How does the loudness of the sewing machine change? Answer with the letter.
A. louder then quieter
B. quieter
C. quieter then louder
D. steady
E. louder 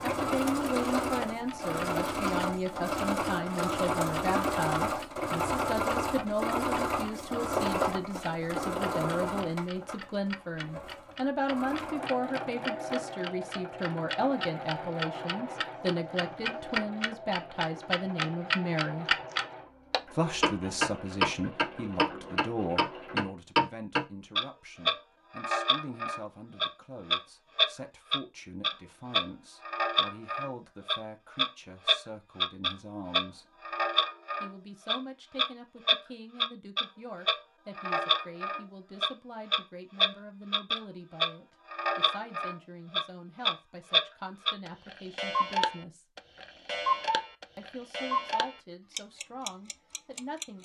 B.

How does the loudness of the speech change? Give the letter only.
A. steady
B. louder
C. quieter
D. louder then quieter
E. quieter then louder
C.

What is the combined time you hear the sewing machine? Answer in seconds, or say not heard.
23 s.